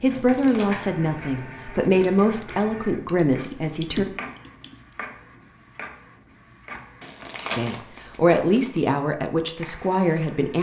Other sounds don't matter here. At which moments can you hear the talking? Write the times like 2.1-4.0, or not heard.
0.0-4.0, 7.5-10.5.